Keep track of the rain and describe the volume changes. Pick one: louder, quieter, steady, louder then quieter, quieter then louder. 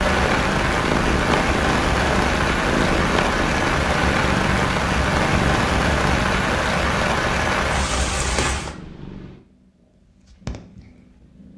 steady.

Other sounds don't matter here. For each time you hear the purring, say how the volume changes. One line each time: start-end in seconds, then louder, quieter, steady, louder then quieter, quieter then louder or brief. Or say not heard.
0.0-11.5 quieter.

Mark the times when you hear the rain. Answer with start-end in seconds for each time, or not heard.
0.0-8.8.